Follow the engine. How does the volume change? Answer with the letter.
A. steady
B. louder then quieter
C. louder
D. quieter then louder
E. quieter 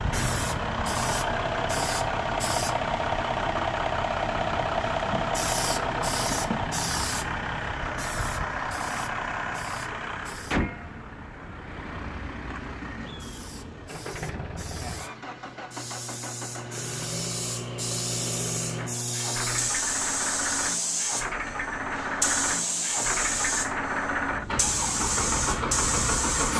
D.